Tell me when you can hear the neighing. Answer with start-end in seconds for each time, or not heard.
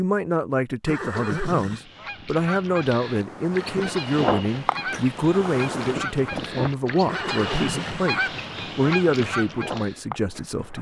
0.8-1.9, 7.0-8.2.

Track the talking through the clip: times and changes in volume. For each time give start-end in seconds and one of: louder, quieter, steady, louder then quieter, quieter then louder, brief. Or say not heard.
0.0-10.7 steady.